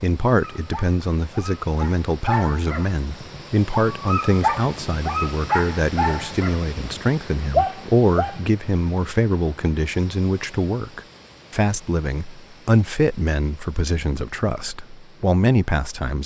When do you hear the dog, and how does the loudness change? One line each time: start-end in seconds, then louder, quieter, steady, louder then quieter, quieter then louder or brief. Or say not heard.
0.4-8.4 louder.